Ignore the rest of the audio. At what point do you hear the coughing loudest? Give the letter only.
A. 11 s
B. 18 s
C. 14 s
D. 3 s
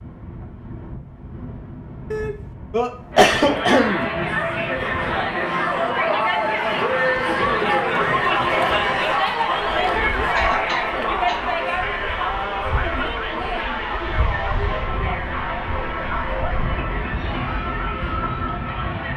D.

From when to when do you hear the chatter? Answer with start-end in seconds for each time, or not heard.
3.1-19.1.